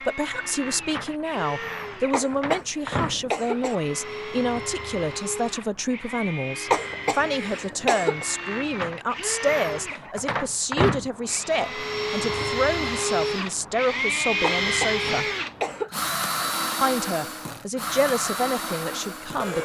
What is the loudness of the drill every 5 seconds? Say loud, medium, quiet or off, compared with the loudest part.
medium, medium, loud, loud.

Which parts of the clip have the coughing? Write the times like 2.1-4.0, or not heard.
2.1-3.8, 6.7-8.2, 14.4-15.9.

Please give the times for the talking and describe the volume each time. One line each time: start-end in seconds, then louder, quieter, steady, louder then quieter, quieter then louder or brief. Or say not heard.
0.0-15.2 steady
16.8-19.5 brief.